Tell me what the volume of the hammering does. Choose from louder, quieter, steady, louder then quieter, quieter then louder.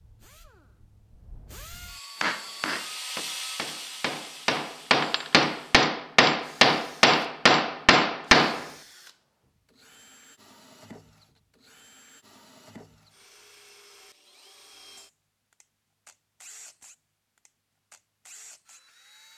louder.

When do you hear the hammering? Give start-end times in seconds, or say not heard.
2.2-8.7.